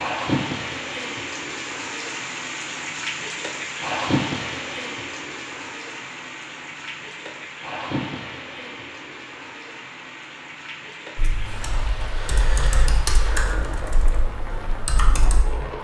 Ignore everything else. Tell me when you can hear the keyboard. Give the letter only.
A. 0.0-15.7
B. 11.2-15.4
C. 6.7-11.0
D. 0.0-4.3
B.